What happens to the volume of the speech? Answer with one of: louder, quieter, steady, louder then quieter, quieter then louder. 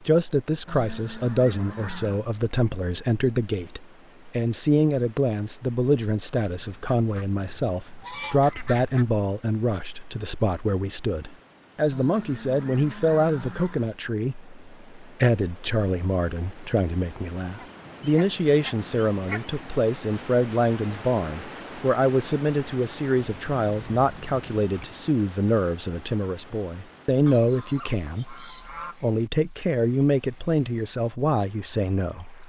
steady.